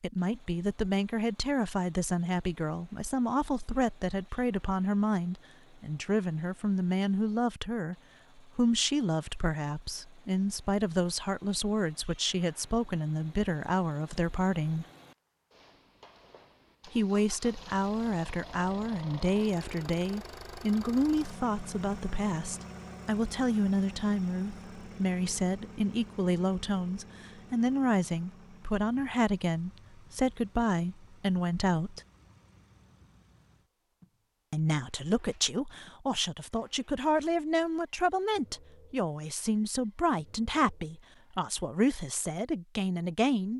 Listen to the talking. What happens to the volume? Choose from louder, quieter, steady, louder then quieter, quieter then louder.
steady.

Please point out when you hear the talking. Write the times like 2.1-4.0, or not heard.
0.0-14.8, 16.9-32.0, 34.5-43.5.